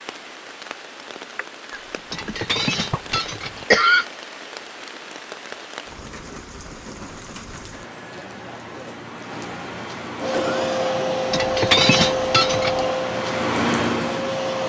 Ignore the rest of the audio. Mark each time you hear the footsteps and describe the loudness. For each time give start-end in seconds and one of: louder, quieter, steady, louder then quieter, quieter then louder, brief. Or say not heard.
not heard.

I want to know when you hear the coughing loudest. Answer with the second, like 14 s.
4 s.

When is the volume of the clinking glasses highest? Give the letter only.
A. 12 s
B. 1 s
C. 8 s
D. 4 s
A.